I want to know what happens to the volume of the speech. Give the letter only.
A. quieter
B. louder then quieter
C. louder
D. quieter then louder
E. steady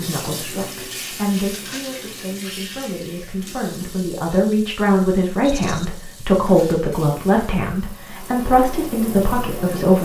C.